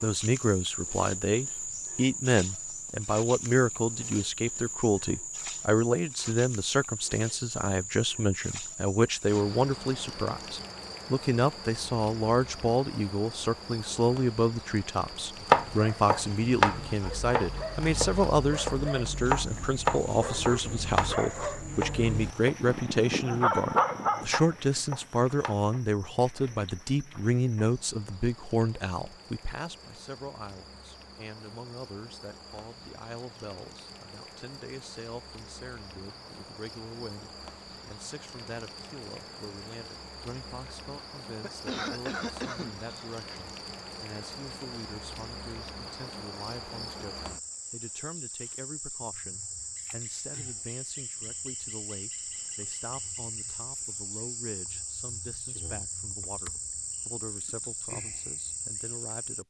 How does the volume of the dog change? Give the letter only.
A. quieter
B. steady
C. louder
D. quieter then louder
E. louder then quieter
C.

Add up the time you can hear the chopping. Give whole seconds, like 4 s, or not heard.
10 s.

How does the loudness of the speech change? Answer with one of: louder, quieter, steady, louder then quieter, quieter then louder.
quieter.